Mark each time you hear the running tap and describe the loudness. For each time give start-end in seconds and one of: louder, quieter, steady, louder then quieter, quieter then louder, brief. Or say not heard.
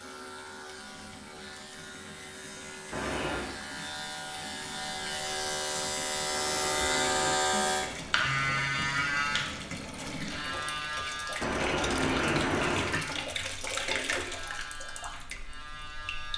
0.0-16.3 louder.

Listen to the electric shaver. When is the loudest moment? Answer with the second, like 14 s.
7 s.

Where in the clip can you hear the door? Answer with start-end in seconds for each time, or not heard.
2.9-3.5, 6.3-7.4, 11.4-13.1.